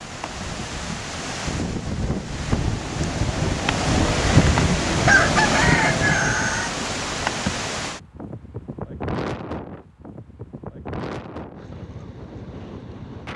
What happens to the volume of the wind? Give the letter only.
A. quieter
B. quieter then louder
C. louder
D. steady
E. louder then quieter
E.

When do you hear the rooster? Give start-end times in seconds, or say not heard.
5.0-6.7.